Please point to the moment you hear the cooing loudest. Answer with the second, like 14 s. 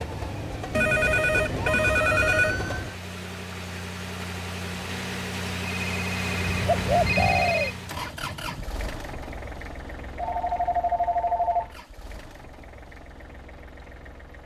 7 s.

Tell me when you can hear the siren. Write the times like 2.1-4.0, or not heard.
0.0-3.0.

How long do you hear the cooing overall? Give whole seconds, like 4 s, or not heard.
2 s.